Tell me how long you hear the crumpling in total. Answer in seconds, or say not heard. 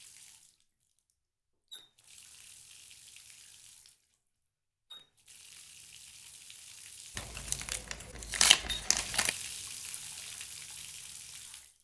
2 s.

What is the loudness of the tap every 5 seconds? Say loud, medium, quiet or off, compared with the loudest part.
medium, loud, loud.